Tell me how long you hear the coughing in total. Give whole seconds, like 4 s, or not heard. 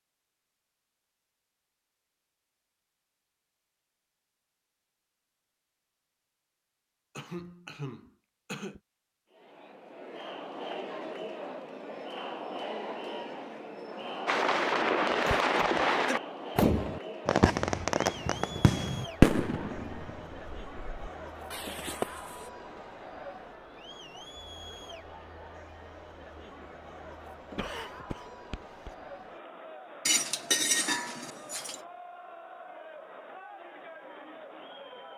4 s.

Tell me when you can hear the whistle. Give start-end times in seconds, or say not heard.
not heard.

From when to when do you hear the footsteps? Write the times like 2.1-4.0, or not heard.
not heard.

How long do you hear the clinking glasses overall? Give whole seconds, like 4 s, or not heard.
2 s.